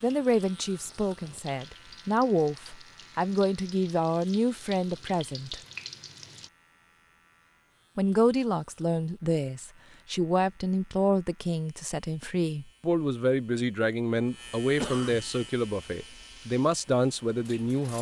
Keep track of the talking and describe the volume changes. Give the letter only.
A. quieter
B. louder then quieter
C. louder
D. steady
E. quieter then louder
D.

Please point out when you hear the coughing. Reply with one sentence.
You can hear the coughing from 14.8 to 15.2 s.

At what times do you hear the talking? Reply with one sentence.
The talking can be heard from 0.0 to 5.6 s and from 8.0 to 17.9 s.